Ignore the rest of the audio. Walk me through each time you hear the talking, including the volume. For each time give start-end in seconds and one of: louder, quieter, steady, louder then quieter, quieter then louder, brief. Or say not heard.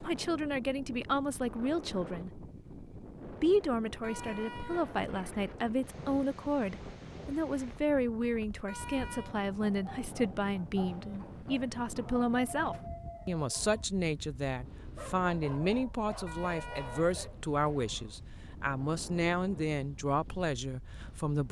0.0-2.5 brief
3.4-21.4 steady.